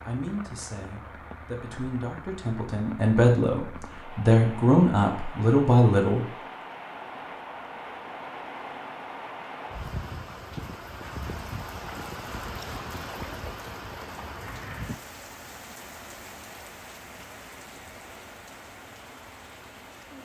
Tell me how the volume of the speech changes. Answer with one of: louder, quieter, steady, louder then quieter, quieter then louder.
louder.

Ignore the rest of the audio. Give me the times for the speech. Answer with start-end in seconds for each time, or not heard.
0.0-6.2.